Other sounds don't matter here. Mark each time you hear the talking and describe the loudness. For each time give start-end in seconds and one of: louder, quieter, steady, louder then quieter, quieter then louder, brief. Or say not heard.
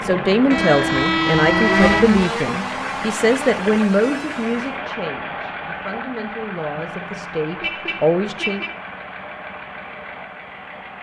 0.0-8.7 quieter then louder.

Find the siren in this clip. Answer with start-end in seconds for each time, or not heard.
0.0-4.8.